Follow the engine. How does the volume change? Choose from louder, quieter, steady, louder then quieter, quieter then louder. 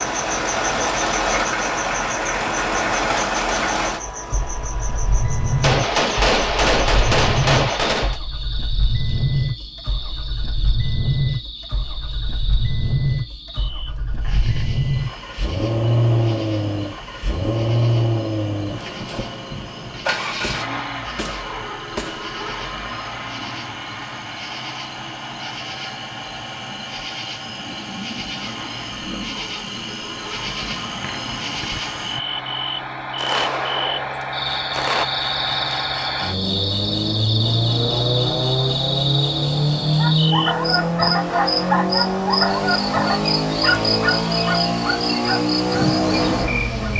quieter then louder.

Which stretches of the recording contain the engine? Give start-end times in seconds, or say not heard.
0.0-46.9.